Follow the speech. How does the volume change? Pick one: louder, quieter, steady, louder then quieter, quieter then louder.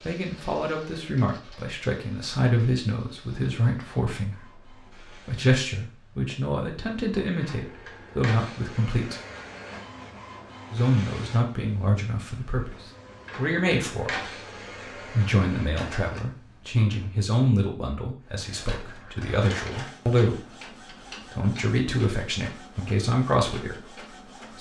steady.